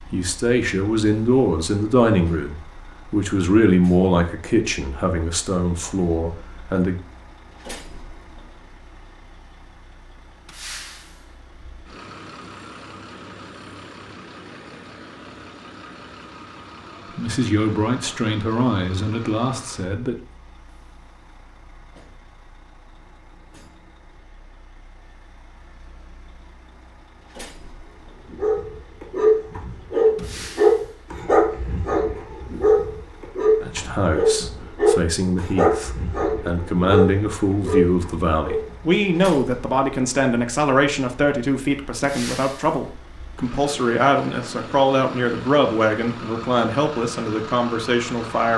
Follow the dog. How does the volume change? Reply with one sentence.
The volume of the dog stays about the same.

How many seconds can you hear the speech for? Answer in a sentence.
The speech can be heard for 25 seconds in total.